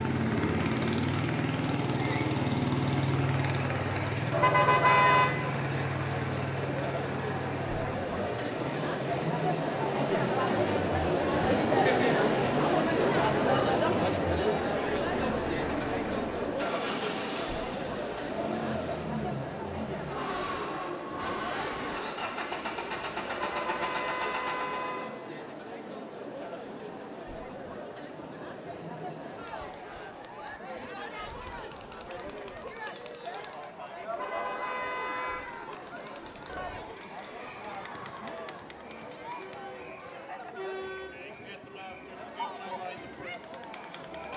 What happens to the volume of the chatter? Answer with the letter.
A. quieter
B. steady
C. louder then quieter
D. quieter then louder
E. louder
C.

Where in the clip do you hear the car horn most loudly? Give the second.
5 s.